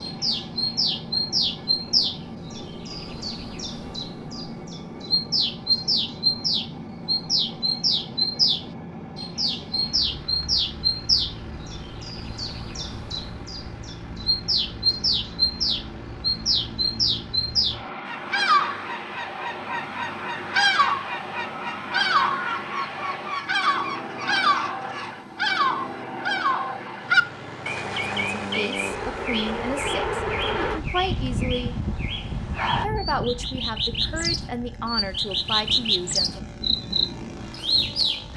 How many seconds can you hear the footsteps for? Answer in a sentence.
The footsteps can't be heard in this clip.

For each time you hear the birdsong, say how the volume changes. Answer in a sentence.
The birdsong can be heard from 0.0 to 38.3 s, at a steady volume.